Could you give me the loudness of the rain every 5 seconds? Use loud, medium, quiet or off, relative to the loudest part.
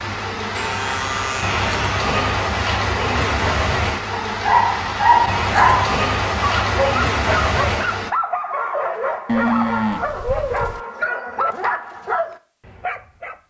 loud, loud, off.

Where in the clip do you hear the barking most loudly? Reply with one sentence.
The loudest moment of the barking is at 5 seconds.